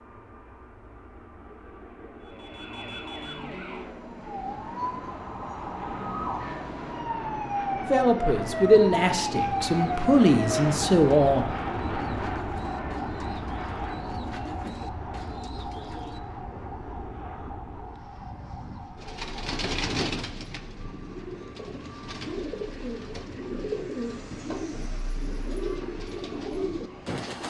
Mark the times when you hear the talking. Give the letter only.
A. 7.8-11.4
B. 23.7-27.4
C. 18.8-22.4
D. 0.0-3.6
A.